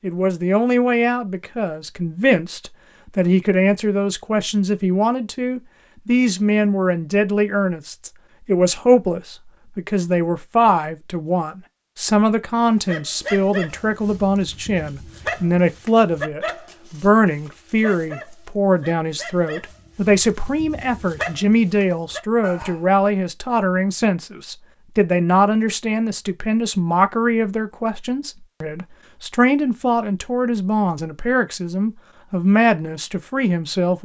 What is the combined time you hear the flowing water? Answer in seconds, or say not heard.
not heard.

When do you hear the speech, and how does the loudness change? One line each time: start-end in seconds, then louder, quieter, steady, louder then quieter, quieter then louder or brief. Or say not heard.
0.0-34.0 steady.